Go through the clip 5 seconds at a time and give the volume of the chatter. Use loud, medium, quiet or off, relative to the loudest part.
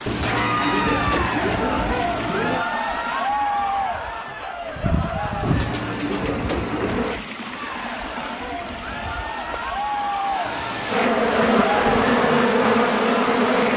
loud, medium, loud.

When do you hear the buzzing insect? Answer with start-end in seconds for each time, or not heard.
4.7-7.2, 10.8-13.7.